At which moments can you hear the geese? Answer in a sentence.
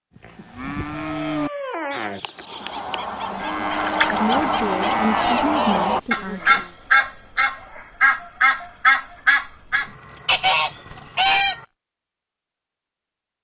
The geese can be heard from 2.4 to 11.6 s.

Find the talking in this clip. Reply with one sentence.
You can hear the talking from 3.3 to 6.8 s.